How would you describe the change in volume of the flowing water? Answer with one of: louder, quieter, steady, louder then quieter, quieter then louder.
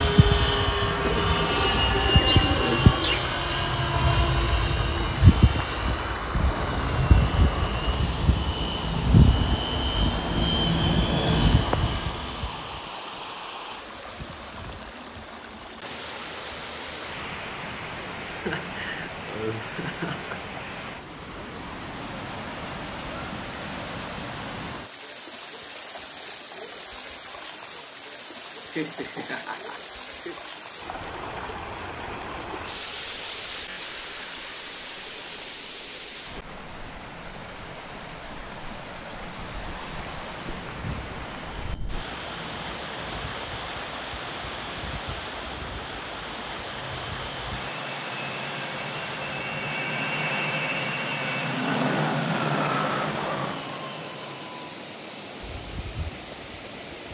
steady.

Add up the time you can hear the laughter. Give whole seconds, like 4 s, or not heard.
4 s.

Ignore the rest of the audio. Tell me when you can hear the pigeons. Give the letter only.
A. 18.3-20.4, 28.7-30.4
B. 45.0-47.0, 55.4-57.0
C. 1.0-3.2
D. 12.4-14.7
C.